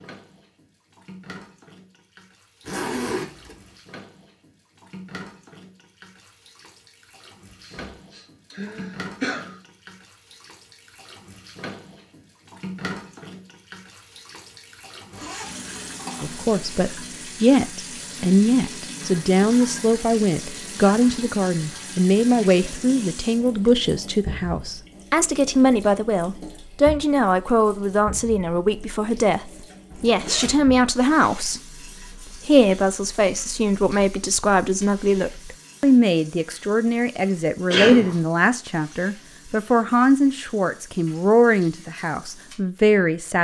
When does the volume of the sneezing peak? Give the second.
38 s.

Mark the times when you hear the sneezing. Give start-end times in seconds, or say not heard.
7.7-9.6, 37.7-38.1.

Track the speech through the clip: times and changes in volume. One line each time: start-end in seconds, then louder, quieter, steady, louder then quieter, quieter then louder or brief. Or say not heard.
16.2-43.4 steady.